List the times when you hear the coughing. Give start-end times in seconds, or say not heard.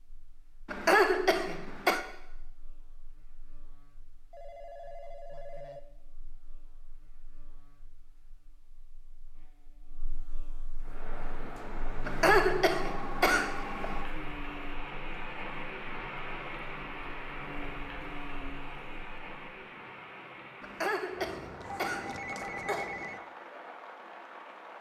0.7-2.0, 12.1-14.1, 20.6-22.9.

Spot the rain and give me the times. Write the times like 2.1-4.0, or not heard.
10.8-24.7.